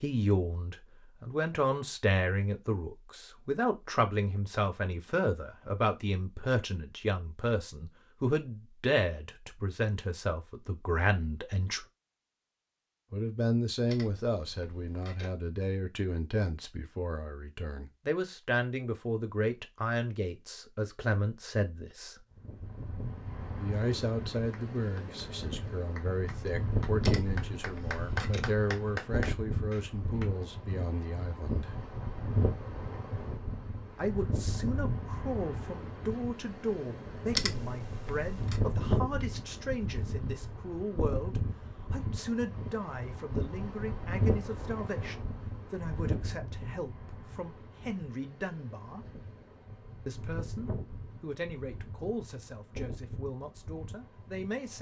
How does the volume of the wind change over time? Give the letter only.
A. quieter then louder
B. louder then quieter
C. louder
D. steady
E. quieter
E.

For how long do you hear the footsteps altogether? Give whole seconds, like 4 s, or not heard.
not heard.